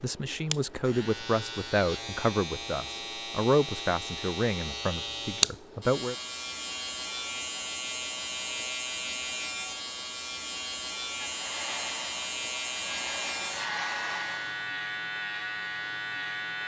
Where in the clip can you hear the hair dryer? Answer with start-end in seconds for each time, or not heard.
11.2-14.7.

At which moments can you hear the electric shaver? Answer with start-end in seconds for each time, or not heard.
0.0-16.6.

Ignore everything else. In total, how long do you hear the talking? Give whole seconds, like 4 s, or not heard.
6 s.